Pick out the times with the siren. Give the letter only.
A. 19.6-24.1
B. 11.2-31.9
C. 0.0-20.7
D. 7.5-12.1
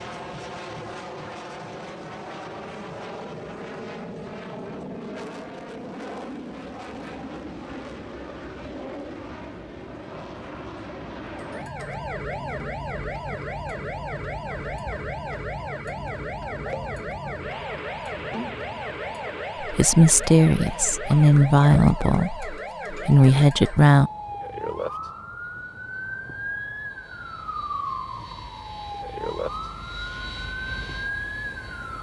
B.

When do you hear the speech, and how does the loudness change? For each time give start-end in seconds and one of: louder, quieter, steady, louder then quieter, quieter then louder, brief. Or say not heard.
19.6-24.1 quieter then louder.